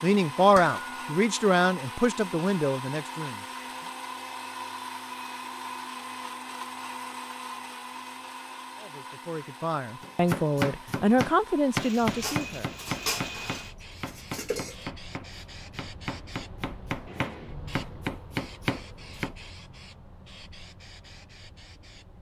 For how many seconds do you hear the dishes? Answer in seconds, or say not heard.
3 s.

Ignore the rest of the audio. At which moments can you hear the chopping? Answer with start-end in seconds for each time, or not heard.
10.0-19.4.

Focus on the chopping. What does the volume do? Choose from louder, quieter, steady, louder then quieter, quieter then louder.
quieter then louder.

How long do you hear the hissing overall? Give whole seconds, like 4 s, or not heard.
10 s.